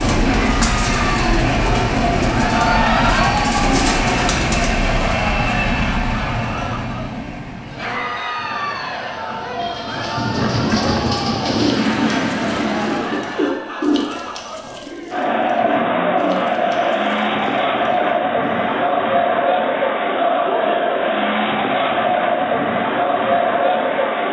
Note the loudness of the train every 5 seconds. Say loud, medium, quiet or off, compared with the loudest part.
loud, medium, loud, off, off.